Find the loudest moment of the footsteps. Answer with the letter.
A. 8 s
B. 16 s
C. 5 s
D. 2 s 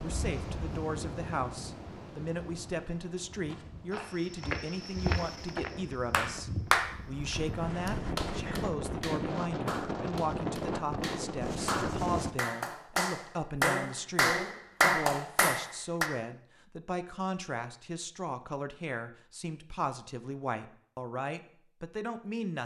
C.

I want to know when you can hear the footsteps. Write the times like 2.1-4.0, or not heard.
3.4-7.5.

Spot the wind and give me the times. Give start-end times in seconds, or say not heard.
0.0-12.3.